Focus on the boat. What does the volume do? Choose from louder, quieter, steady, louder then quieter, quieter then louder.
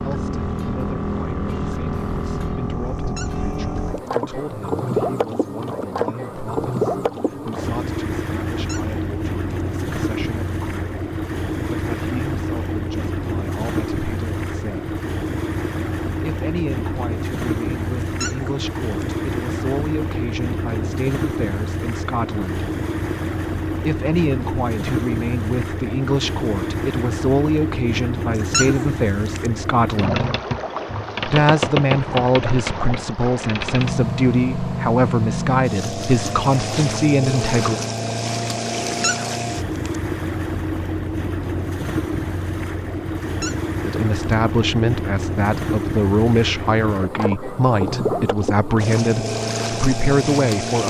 steady.